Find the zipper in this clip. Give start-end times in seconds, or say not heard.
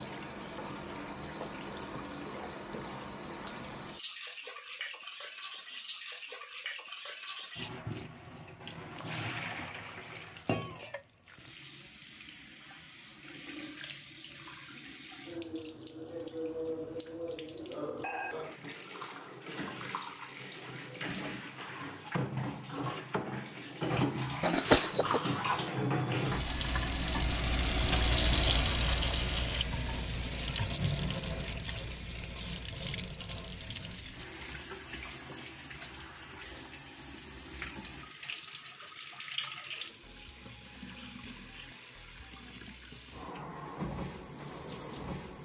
24.4-25.2.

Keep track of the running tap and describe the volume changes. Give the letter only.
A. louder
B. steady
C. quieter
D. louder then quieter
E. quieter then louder
D.